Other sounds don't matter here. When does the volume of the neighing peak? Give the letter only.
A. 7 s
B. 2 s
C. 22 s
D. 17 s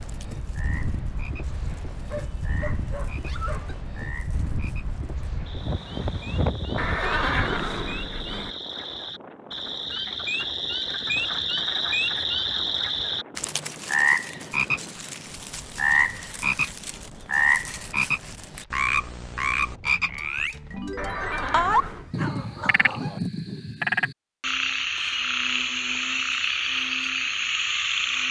A.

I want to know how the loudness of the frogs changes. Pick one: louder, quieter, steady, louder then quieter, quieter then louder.
louder.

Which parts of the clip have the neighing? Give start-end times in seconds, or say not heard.
6.8-8.6, 20.9-22.1.